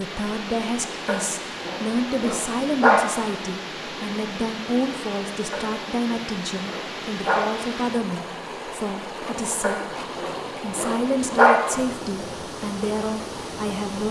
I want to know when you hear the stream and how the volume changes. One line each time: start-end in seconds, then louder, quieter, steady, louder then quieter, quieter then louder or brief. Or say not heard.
0.0-14.0 steady.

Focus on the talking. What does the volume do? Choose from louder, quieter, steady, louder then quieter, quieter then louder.
steady.